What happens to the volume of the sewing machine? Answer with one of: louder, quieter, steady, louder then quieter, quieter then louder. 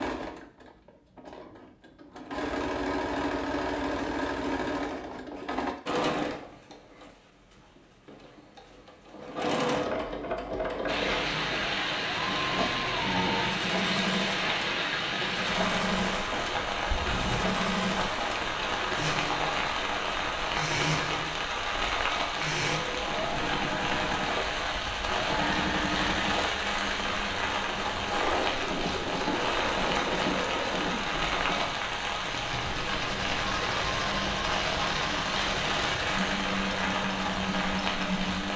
steady.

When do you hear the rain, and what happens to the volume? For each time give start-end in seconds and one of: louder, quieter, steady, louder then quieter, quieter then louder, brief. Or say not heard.
10.8-38.5 steady.